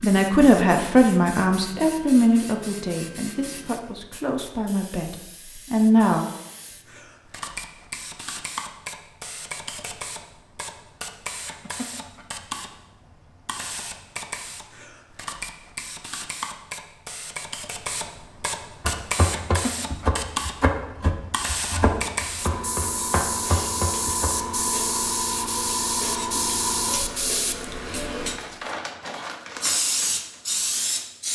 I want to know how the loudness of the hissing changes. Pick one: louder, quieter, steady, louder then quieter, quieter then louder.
louder.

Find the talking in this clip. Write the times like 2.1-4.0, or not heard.
0.0-6.2.